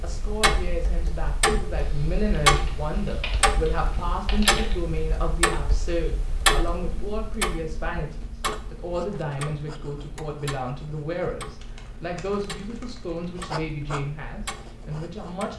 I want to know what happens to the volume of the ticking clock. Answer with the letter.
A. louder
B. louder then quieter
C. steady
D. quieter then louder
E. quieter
E.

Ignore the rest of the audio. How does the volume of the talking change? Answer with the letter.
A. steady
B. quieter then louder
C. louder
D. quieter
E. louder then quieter
A.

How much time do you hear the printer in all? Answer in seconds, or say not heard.
not heard.